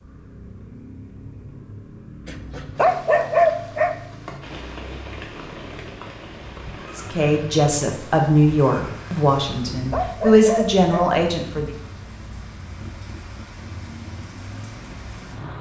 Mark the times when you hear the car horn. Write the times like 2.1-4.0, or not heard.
not heard.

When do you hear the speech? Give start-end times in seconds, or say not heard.
7.0-11.7.